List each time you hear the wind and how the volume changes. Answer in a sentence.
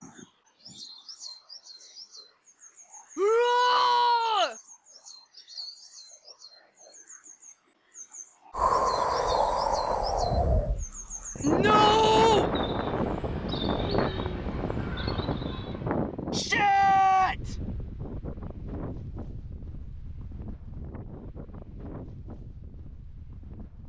The wind can be heard from 8.6 to 23.8 s, getting quieter.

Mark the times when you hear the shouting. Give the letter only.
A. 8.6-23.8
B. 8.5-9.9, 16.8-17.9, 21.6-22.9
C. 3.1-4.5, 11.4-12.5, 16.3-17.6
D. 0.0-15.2
C.